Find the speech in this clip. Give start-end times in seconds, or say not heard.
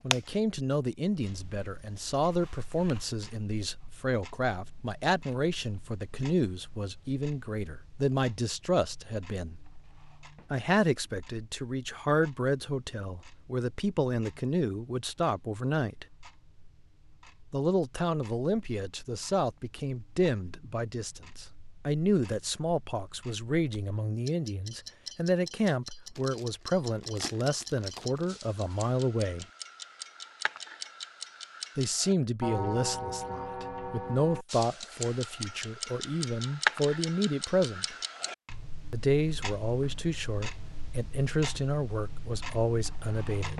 0.0-9.6, 10.5-16.1, 17.5-29.4, 31.8-38.0, 38.9-43.5.